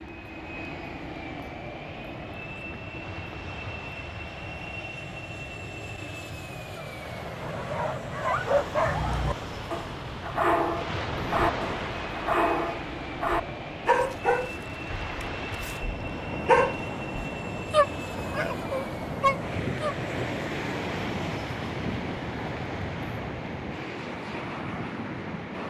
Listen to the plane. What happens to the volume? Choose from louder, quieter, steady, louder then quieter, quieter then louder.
steady.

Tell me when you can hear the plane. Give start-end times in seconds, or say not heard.
0.0-25.6.